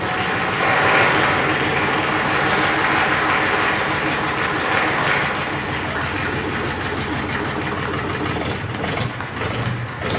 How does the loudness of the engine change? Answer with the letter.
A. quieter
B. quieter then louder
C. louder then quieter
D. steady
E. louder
D.